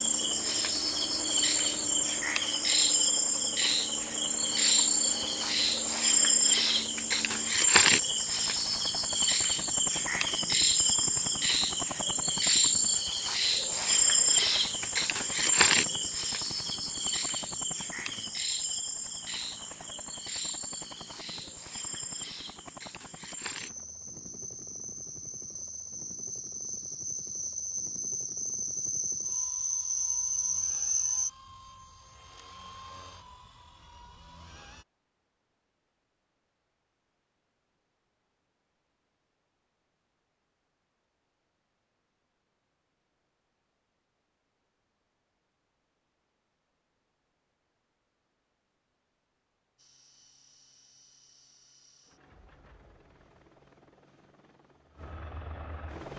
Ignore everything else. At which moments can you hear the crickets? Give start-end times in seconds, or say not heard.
0.0-31.3.